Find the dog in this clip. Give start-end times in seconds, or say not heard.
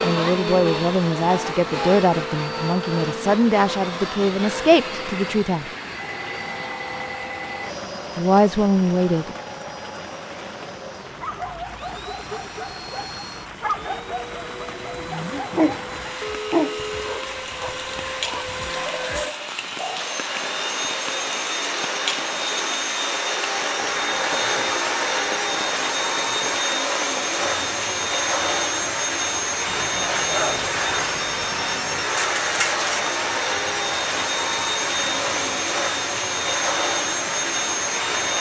11.2-20.2.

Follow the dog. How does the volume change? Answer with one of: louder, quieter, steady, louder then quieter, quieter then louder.
louder then quieter.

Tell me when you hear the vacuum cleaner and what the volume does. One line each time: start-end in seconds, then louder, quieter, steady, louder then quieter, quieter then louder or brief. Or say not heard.
0.0-38.3 quieter then louder.